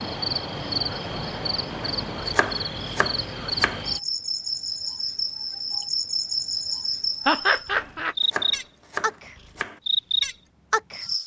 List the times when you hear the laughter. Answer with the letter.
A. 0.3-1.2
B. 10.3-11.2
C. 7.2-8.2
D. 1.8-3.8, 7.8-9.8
C.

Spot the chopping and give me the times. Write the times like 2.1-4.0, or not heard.
1.8-3.8, 7.8-9.8.